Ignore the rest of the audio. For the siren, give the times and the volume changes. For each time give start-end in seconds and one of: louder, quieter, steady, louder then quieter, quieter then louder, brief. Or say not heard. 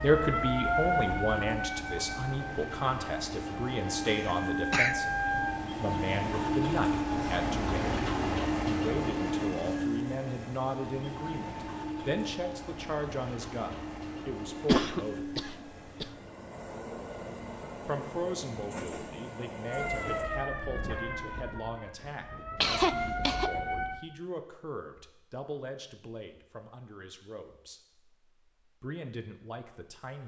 0.0-5.7 quieter then louder
19.6-24.0 quieter then louder.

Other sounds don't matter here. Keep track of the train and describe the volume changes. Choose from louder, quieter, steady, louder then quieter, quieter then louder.
louder then quieter.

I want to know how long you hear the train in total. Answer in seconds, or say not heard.
20 s.